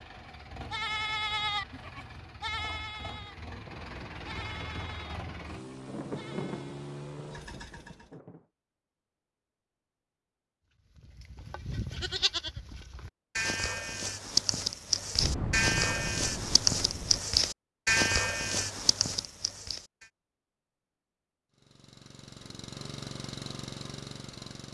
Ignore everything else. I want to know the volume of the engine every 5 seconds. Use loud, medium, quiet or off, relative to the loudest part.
loud, loud, off, off, loud.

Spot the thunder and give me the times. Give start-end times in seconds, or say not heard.
3.6-8.4, 15.2-17.2.